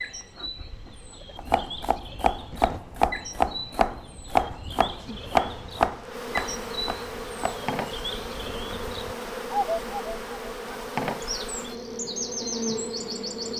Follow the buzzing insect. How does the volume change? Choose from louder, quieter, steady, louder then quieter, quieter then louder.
louder.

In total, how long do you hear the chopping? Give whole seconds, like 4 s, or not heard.
6 s.